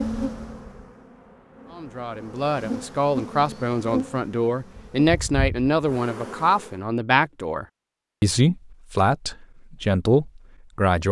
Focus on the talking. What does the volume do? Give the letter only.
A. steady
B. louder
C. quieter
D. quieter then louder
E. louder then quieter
A.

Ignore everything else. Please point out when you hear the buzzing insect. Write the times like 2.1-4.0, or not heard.
0.0-6.8.